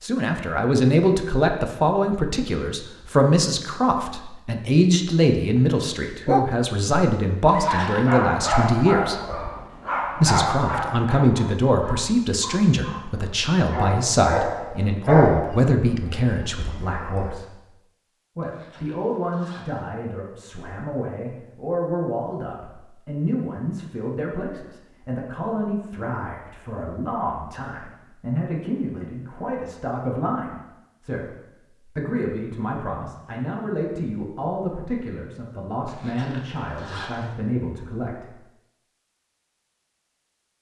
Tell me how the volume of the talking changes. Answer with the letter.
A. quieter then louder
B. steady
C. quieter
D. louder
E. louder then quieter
C.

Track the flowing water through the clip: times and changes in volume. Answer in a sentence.
You can't hear the flowing water here.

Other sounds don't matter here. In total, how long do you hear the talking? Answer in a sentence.
The talking can be heard for 37 seconds in total.